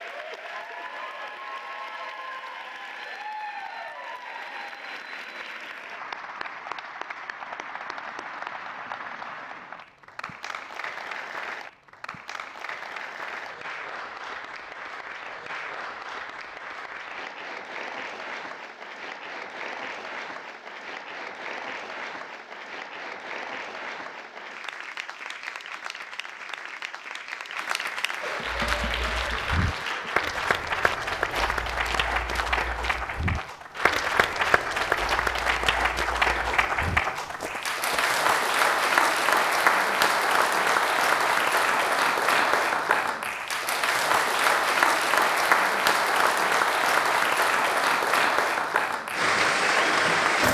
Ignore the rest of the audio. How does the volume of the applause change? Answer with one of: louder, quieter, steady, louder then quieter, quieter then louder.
louder.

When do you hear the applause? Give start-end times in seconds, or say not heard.
0.0-50.4.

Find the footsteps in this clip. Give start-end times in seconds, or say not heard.
28.4-38.1.